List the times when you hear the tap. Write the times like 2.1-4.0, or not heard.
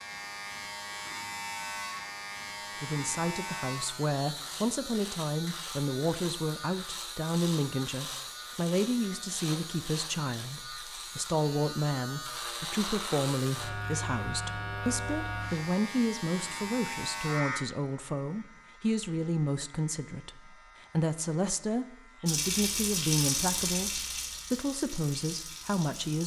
22.2-26.2.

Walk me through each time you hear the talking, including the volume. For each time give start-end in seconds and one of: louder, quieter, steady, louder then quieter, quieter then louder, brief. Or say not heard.
2.8-26.2 steady.